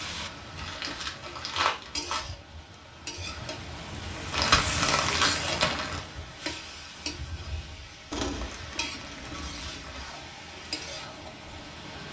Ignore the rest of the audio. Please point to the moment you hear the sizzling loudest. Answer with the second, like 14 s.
5 s.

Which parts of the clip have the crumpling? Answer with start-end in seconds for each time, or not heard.
0.6-2.2, 4.3-6.0, 8.1-10.1.